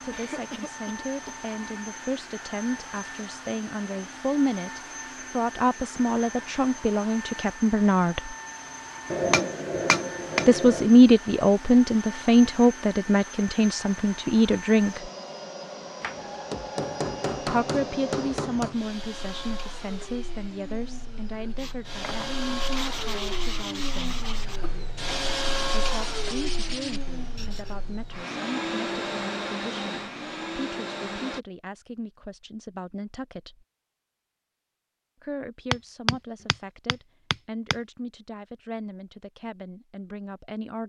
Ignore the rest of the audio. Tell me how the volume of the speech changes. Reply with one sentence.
The loudness of the speech goes up, then down.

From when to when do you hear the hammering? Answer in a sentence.
You can hear the hammering from 9.1 to 10.8 s, from 16.0 to 18.8 s and from 35.7 to 37.8 s.